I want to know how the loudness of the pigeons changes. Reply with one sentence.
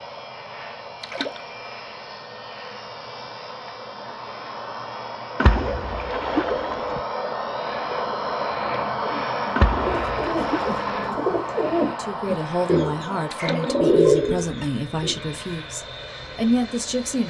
The loudness of the pigeons goes up.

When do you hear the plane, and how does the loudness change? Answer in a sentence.
The plane can be heard from 0.0 to 17.2 s, getting louder then quieter.